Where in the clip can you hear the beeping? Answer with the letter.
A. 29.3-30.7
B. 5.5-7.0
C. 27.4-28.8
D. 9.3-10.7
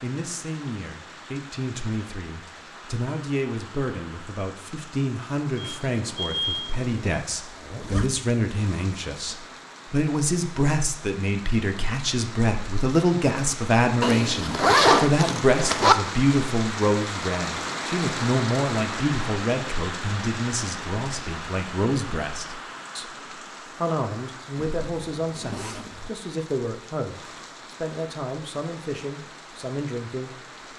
B.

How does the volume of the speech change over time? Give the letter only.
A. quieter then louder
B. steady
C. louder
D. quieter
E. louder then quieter
E.